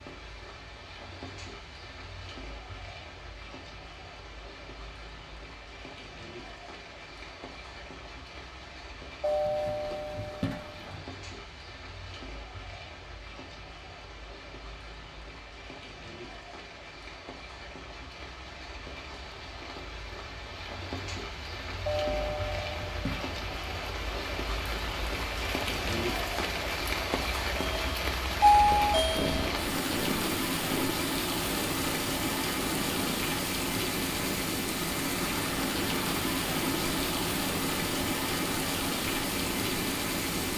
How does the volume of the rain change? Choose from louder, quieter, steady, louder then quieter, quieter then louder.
louder.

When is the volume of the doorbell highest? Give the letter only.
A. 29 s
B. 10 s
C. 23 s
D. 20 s
A.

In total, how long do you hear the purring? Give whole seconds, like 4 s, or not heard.
12 s.